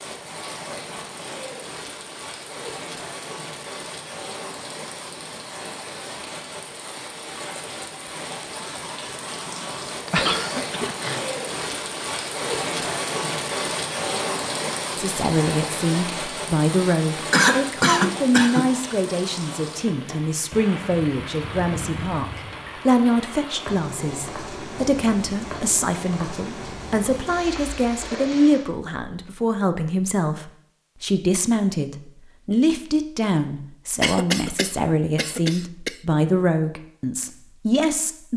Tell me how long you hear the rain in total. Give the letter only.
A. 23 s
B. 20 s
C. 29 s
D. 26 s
C.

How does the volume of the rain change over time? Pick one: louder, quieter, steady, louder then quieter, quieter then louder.
louder then quieter.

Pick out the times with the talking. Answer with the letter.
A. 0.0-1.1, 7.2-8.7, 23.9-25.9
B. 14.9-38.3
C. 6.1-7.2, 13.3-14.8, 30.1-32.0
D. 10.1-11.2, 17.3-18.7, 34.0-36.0
B.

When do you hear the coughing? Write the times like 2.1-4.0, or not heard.
10.1-11.2, 17.3-18.7, 34.0-36.0.